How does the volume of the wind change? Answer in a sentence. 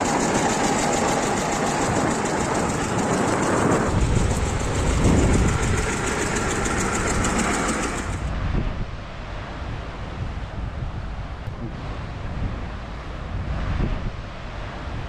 The loudness of the wind goes down.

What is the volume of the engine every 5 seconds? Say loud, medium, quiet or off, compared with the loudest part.
loud, loud, off.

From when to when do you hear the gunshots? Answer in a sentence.
You can't hear the gunshots here.